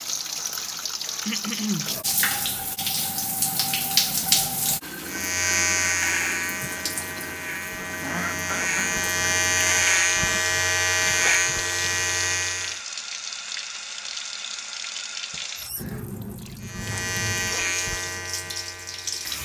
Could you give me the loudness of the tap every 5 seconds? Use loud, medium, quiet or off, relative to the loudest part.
loud, medium, medium, medium.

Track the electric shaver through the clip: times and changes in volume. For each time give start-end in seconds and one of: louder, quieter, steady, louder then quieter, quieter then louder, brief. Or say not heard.
5.0-12.8 quieter then louder
16.6-19.3 brief.